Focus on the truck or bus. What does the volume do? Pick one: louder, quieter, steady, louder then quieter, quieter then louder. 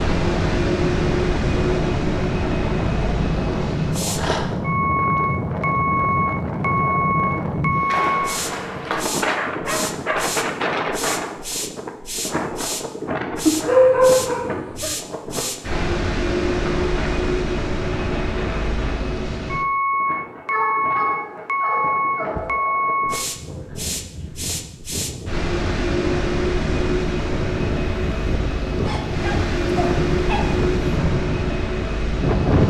steady.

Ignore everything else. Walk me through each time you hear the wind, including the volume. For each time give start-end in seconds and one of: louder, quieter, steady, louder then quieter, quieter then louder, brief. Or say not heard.
0.0-32.6 quieter then louder.